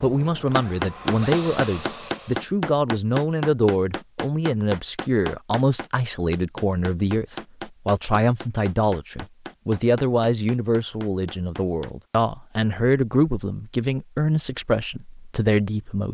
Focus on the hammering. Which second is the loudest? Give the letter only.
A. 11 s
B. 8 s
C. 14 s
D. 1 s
D.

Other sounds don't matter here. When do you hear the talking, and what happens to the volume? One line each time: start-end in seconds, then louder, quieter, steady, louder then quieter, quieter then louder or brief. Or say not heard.
0.0-16.0 steady.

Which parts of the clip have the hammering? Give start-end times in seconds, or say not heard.
0.6-11.9.